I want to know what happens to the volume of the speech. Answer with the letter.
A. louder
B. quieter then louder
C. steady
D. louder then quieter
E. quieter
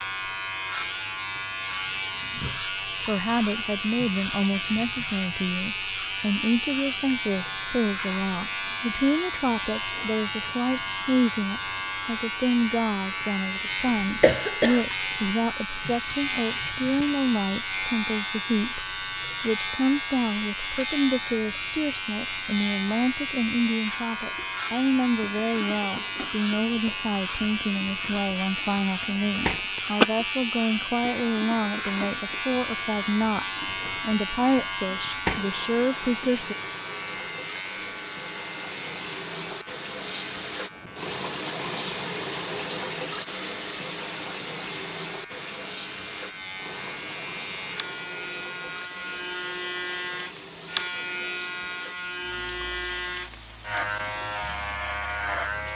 C.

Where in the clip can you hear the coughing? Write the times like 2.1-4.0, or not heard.
13.8-14.8, 29.4-30.1.